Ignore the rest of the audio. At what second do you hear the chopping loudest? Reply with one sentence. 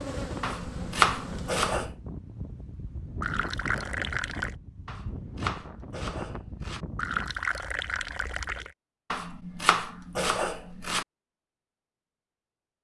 The volume of the chopping peaks at 1 second.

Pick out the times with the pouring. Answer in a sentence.
The pouring can be heard from 3.2 to 4.5 s and from 7.0 to 8.8 s.